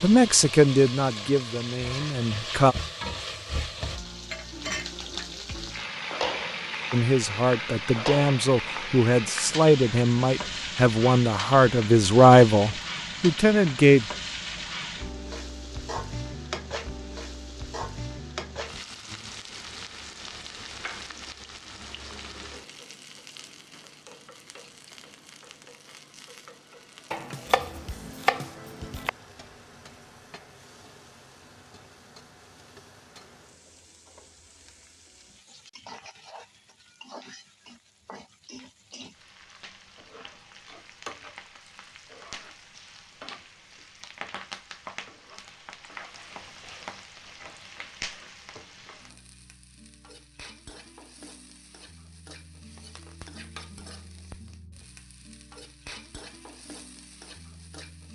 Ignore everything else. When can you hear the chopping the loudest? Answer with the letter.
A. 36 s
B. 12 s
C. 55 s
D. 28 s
D.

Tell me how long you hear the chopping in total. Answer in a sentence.
You can hear the chopping for 2 seconds altogether.